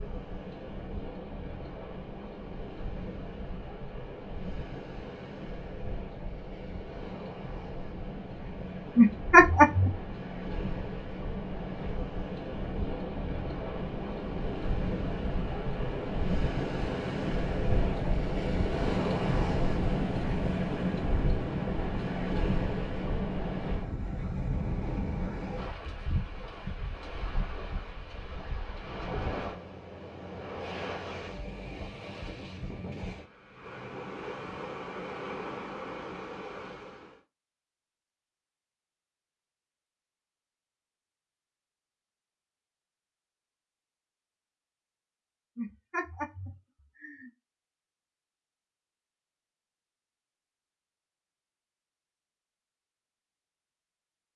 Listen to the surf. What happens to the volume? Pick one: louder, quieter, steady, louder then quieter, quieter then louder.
louder then quieter.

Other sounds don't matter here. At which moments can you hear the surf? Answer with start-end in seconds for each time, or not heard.
0.0-37.2.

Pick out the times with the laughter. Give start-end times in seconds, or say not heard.
8.9-9.9, 45.5-47.3.